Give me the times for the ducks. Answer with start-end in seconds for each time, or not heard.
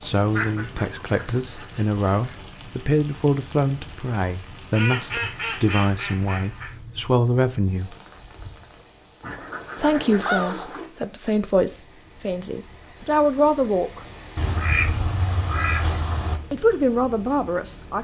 0.0-2.4, 4.7-6.8, 9.2-10.9, 14.3-16.4.